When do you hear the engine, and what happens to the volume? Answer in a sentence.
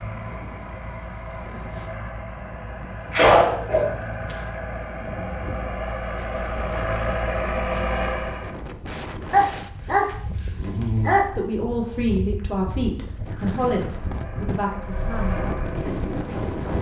The engine can be heard from 0.0 to 8.6 s, getting louder; and briefly from 13.8 to 16.7 s.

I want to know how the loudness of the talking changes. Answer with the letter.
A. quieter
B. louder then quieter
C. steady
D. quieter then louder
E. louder
A.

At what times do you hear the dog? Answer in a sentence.
The dog can be heard from 3.1 to 4.3 s and from 9.3 to 11.2 s.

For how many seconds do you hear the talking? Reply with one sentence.
You can hear the talking for 6 seconds altogether.